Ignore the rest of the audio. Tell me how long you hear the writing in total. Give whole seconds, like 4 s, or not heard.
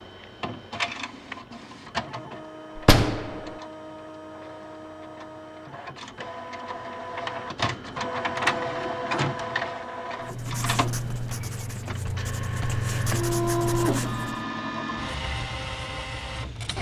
4 s.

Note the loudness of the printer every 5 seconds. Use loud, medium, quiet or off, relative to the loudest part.
medium, loud, loud, loud.